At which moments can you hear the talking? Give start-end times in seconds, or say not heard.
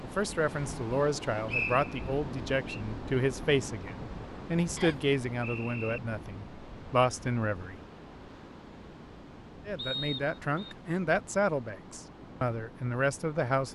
0.0-7.8, 9.7-13.7.